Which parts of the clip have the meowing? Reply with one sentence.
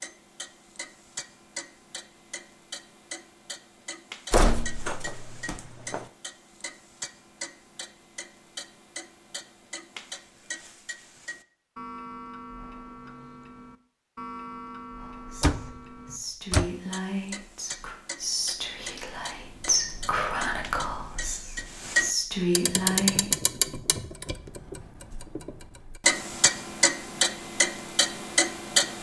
The meowing can't be heard in this clip.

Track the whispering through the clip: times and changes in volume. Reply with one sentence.
The whispering can be heard from 14.9 to 23.4 s, getting louder.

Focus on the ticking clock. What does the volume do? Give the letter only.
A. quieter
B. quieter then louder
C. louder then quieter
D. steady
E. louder
E.